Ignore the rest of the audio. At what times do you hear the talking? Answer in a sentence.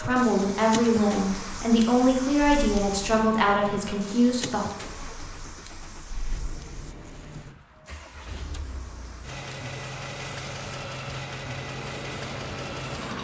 The talking can be heard from 0.0 to 4.7 s.